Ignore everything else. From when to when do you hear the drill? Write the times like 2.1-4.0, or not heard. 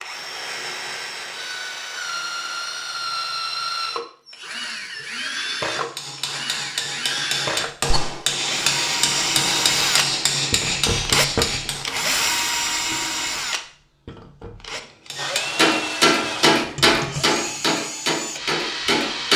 0.0-19.3.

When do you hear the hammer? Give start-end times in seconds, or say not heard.
5.7-12.1, 15.1-19.3.